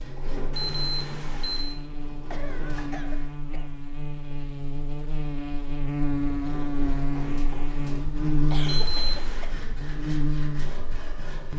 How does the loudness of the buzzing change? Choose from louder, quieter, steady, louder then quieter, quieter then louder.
louder.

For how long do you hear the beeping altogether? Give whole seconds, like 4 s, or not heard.
2 s.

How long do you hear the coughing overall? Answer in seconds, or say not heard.
3 s.